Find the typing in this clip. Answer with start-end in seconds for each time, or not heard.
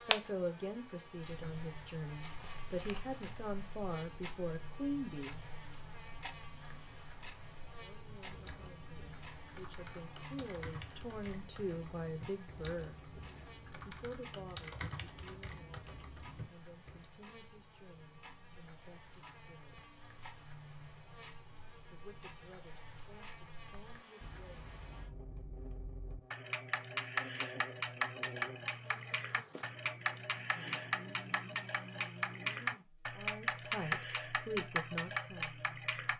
8.1-17.1.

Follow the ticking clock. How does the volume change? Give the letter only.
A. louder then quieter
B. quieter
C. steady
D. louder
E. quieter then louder
E.